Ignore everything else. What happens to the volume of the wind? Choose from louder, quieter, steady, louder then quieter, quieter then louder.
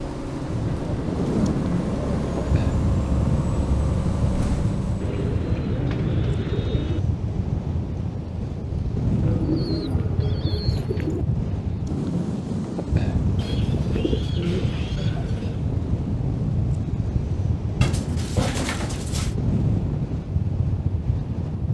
steady.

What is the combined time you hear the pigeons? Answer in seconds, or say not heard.
10 s.